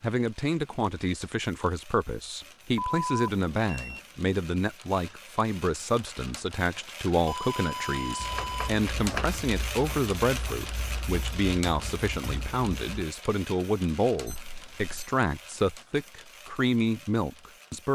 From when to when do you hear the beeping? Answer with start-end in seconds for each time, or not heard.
2.8-4.0, 7.2-8.8, 14.2-15.0.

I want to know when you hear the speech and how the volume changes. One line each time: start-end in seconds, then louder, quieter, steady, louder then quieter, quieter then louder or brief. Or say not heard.
0.0-17.8 steady.